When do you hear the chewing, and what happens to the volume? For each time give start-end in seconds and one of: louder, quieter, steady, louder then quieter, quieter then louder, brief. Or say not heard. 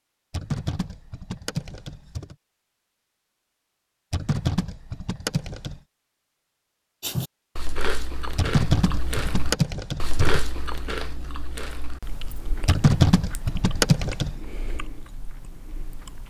7.0-16.2 quieter.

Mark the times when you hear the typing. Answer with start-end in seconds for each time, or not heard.
0.3-2.4, 4.1-5.8, 8.3-10.4, 12.7-14.3.